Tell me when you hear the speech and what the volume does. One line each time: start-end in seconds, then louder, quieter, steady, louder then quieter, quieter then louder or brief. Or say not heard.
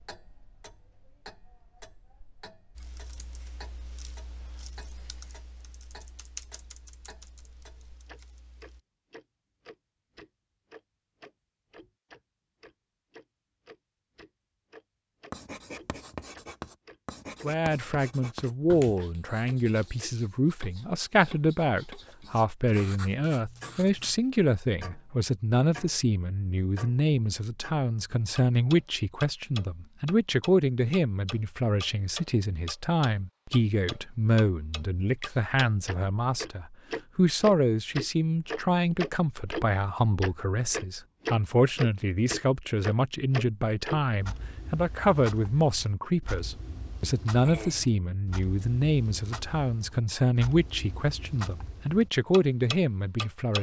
17.4-53.5 steady.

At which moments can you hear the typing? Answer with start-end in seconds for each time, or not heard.
2.8-8.8.